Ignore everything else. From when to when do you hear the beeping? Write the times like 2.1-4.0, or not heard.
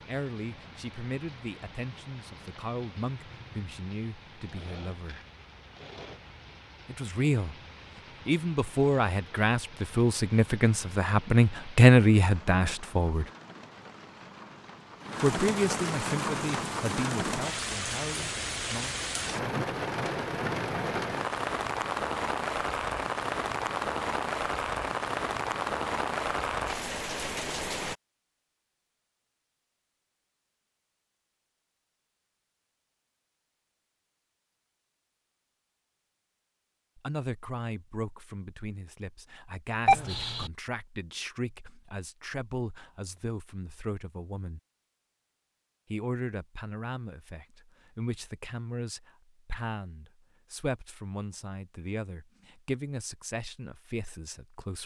39.9-40.5.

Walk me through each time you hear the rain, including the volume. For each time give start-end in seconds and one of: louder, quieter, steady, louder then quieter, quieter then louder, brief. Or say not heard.
0.0-27.9 louder.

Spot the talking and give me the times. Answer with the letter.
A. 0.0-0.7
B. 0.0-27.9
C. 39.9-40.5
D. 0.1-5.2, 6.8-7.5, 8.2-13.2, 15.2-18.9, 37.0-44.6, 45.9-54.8
D.